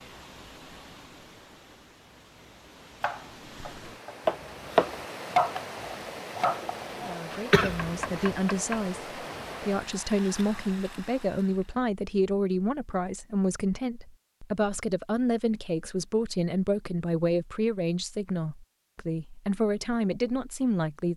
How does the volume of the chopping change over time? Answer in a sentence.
The volume of the chopping goes down.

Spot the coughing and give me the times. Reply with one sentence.
The coughing can be heard from 7.3 to 8.2 s.